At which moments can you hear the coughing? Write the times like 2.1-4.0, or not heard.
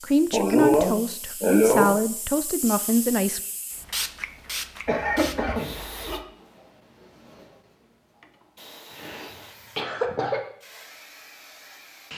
0.3-1.9, 4.8-6.2, 8.9-10.4.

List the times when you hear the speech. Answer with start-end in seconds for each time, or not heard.
0.0-3.4.